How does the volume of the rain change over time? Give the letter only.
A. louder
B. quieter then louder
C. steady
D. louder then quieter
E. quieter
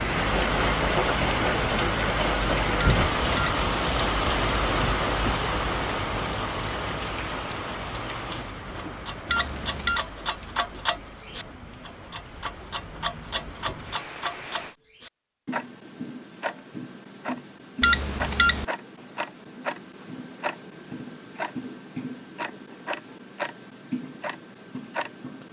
E.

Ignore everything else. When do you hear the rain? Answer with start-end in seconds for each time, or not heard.
0.0-14.8.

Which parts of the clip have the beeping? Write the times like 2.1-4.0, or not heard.
2.8-3.6, 9.2-10.1, 17.8-18.6.